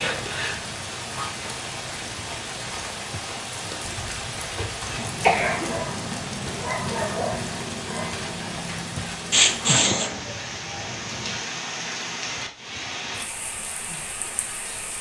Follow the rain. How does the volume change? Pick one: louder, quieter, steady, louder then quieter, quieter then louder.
steady.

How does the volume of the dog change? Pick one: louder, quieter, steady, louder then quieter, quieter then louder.
quieter.